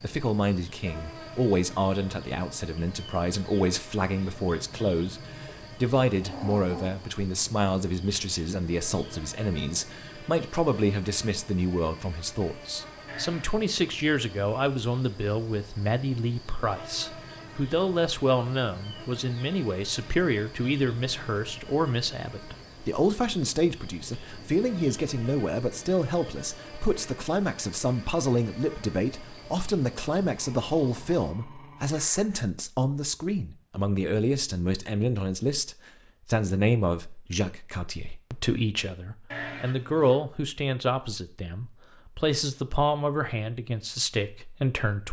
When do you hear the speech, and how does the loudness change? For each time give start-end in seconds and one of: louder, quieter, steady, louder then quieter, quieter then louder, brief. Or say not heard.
0.0-45.0 steady.